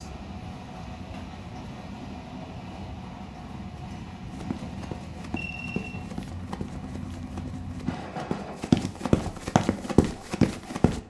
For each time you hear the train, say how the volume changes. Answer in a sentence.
The train can be heard from 0.0 to 11.0 s, getting quieter.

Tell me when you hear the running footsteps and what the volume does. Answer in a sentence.
You can hear the running footsteps from 4.3 to 11.0 s, getting louder.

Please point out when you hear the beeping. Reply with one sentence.
You can hear the beeping from 5.3 to 6.0 s.